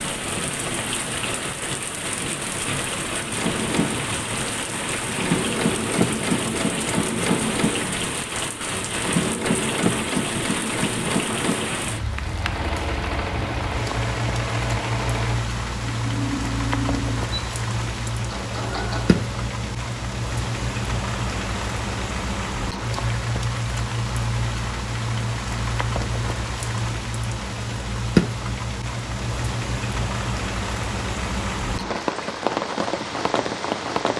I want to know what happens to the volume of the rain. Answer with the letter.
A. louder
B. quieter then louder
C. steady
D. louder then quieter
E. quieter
C.